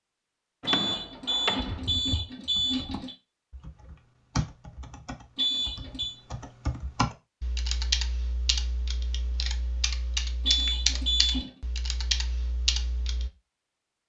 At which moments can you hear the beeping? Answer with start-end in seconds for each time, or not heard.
0.7-3.1, 5.3-6.2, 10.4-11.5.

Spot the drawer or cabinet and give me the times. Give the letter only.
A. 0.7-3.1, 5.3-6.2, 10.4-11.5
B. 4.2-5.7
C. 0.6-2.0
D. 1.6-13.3
C.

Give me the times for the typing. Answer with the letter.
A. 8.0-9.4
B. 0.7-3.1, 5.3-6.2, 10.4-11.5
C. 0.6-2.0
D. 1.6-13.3
D.